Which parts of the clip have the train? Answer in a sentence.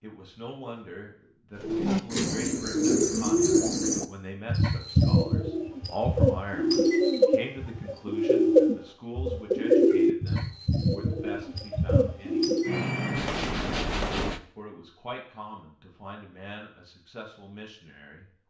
You can hear the train from 12.7 to 14.4 s.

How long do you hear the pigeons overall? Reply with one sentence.
You can hear the pigeons for 11 seconds altogether.